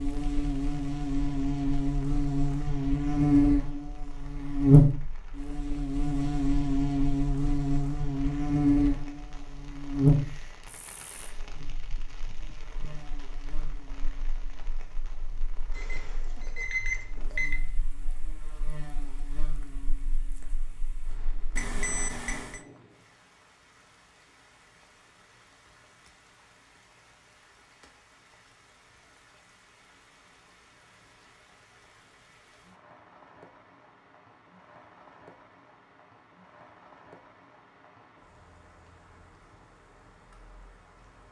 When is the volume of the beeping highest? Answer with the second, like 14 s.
17 s.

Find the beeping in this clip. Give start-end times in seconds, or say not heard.
15.8-17.6, 21.6-22.6.